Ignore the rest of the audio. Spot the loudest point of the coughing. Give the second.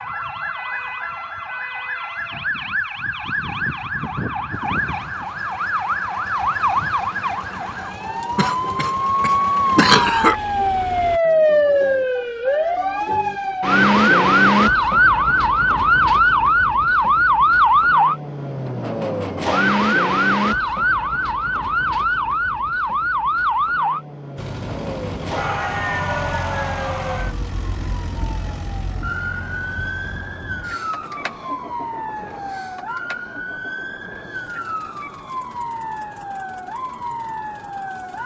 10 s.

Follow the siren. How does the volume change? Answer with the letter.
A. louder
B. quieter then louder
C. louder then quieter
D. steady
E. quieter
C.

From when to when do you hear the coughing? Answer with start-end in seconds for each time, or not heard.
8.3-10.3.